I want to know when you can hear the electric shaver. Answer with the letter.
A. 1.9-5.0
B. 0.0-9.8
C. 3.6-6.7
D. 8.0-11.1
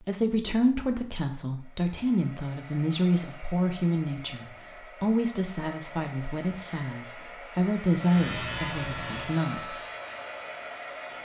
D.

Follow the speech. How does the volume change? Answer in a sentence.
The volume of the speech goes down, then up.